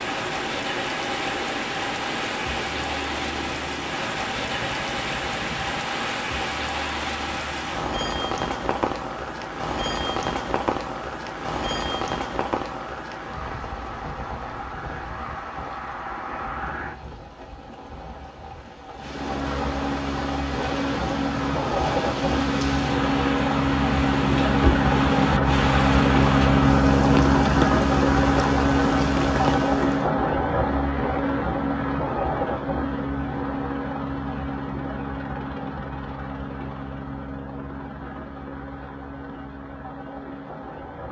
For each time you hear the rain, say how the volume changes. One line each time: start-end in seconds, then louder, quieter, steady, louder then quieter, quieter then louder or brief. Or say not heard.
0.0-30.1 quieter then louder.